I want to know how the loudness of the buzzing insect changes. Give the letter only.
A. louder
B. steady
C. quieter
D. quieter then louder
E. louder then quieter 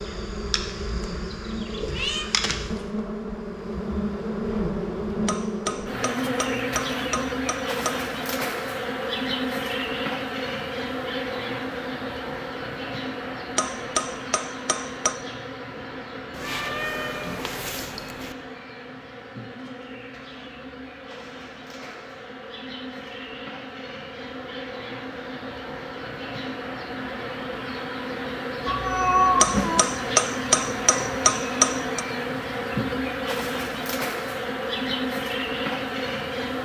D.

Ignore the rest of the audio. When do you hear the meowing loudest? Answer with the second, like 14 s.
29 s.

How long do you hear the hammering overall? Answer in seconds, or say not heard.
7 s.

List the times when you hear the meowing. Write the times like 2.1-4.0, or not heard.
1.9-2.8, 16.4-18.4, 28.6-29.9.